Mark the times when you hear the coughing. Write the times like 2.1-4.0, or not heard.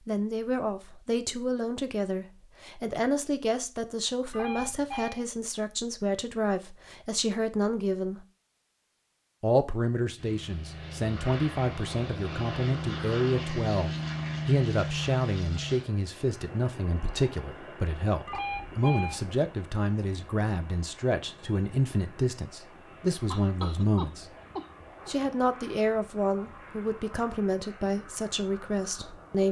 23.3-25.1.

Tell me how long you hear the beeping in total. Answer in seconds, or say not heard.
2 s.